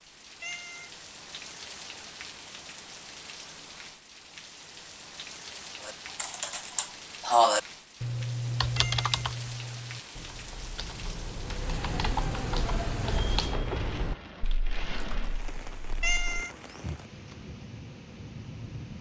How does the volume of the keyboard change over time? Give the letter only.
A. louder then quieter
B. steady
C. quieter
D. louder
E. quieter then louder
E.